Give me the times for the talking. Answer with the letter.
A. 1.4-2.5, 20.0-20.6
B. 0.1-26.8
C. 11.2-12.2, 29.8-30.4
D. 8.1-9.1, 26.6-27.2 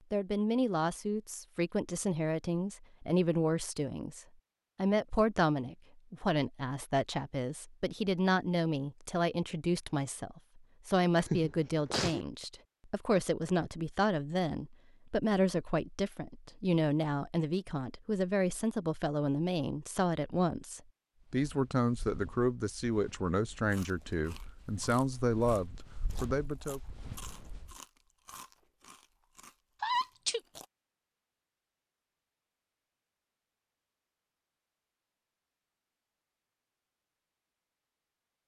B.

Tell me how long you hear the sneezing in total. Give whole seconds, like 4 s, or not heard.
2 s.